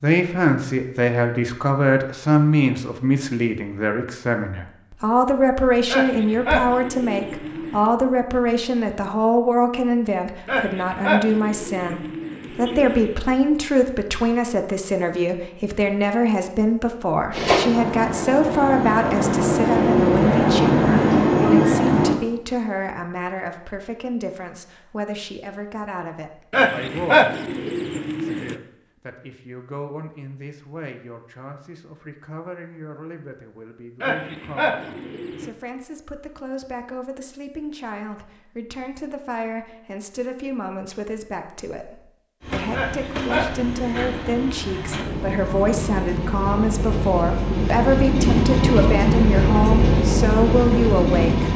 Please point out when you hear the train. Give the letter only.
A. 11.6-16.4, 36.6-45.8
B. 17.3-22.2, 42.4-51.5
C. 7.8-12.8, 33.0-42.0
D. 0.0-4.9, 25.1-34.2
B.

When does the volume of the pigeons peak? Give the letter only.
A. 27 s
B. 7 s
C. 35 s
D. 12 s
A.